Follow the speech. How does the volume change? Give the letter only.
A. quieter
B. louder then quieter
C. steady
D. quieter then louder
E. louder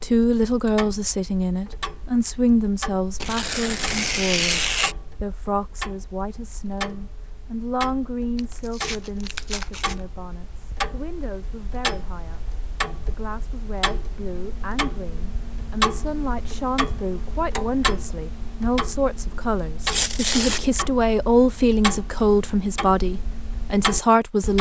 D.